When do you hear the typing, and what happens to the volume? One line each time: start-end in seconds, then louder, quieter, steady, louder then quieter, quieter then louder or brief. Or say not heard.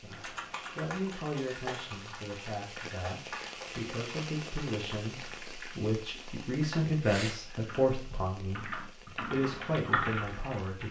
0.1-10.8 quieter then louder.